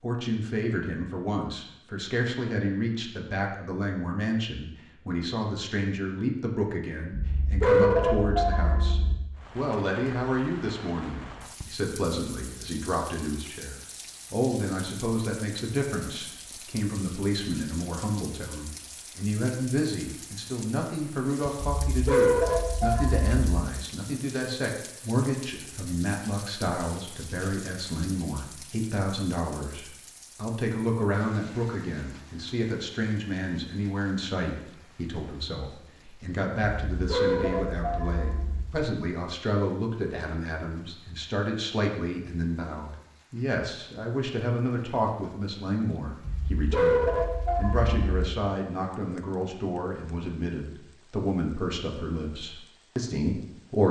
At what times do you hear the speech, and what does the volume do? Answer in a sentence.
The speech can be heard from 0.0 to 53.8 s, at a steady volume.